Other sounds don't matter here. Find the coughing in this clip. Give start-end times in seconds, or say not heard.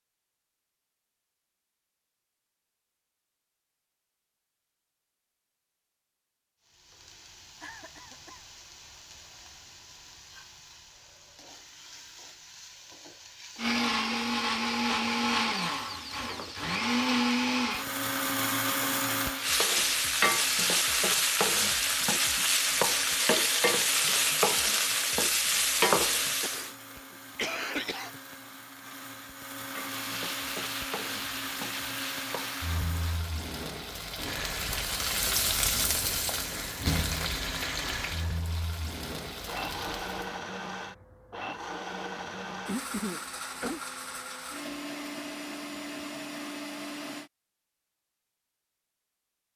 7.6-8.4, 26.4-28.2, 42.6-43.8.